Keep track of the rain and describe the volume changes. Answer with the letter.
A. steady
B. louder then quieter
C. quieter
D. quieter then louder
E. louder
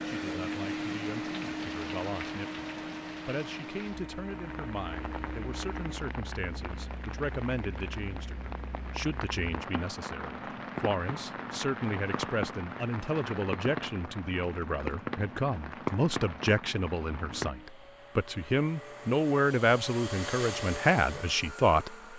E.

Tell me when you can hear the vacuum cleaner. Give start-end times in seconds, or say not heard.
0.0-6.0, 17.4-22.1.